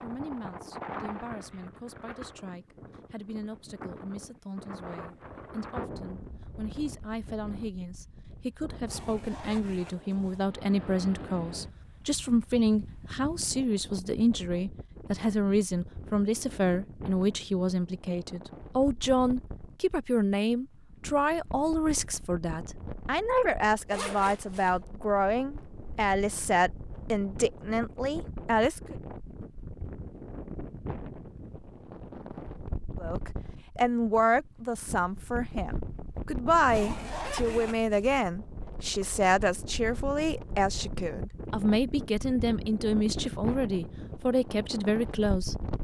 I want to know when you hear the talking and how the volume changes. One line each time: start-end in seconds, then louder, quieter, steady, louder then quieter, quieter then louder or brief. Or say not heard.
0.0-28.9 louder
33.0-45.7 steady.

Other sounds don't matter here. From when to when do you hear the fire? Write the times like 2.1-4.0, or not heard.
not heard.